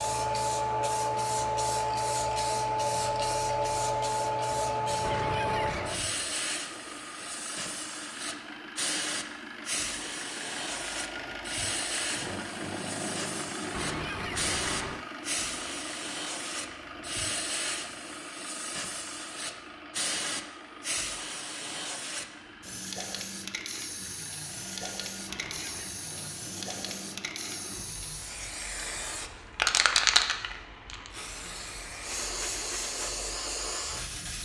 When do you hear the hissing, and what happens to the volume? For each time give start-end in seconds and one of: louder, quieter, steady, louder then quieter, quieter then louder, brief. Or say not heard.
0.0-34.4 quieter then louder.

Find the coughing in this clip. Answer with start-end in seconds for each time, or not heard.
5.0-6.0, 13.7-15.1, 25.2-26.0.